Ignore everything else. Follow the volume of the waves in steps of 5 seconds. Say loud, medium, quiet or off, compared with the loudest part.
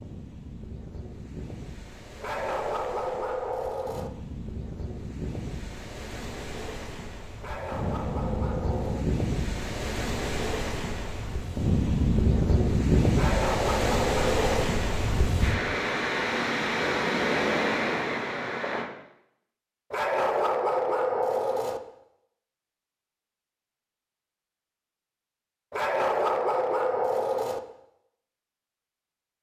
quiet, medium, loud, loud, off, off.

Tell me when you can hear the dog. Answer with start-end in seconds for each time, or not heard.
2.2-4.1, 7.4-9.1, 13.2-14.7, 19.9-21.8, 25.7-27.6.